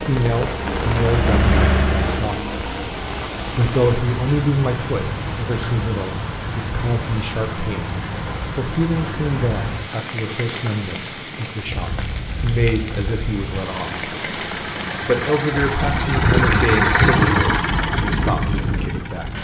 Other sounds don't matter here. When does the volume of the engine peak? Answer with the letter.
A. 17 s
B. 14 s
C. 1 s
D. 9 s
A.